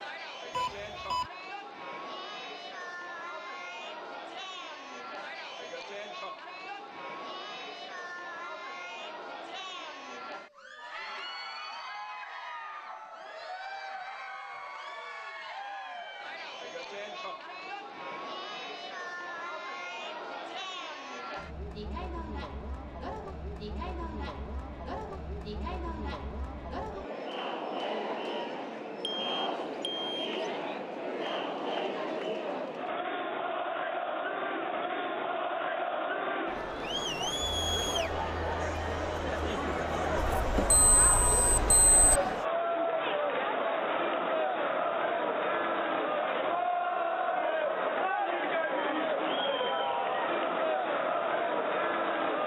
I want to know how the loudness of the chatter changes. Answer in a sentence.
The volume of the chatter goes up.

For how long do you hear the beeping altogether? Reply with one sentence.
You can hear the beeping for 4 seconds altogether.